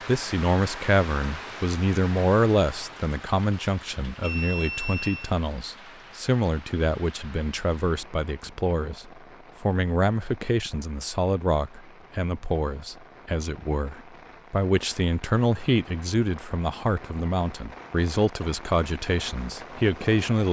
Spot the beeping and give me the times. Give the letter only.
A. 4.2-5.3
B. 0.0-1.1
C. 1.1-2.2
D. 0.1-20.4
A.